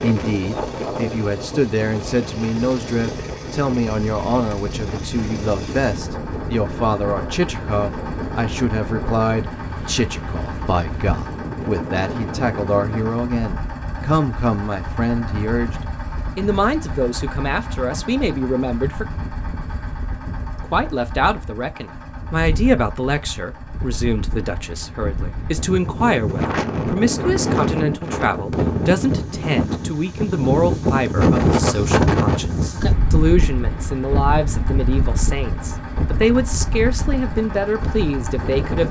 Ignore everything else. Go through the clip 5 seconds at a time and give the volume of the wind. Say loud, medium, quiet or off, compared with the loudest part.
medium, medium, medium, quiet, quiet, loud, loud, medium.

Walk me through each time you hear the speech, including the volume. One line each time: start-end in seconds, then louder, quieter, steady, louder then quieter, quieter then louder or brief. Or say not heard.
0.0-15.8 steady
16.4-19.1 brief
20.6-38.8 steady.